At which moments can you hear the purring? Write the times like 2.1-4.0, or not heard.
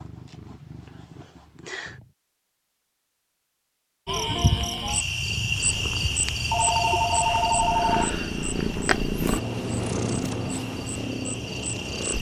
0.0-2.1, 5.0-12.1.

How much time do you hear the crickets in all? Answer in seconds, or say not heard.
8 s.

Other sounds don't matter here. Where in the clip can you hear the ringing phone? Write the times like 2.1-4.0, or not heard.
6.5-8.2.